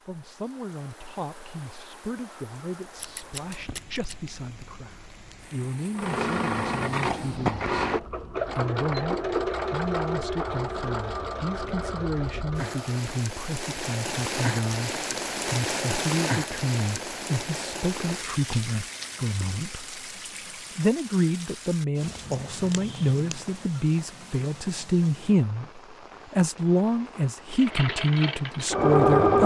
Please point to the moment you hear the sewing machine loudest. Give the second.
29 s.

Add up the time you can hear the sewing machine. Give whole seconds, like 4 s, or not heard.
9 s.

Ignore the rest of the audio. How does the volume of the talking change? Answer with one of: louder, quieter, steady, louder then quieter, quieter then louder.
louder.